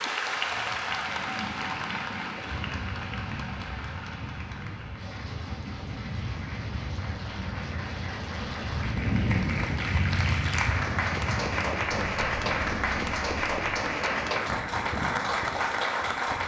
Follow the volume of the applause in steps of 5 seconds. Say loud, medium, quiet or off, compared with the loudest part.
medium, medium, loud, loud.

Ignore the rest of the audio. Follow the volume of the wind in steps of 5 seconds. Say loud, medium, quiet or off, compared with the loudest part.
medium, loud, loud, medium.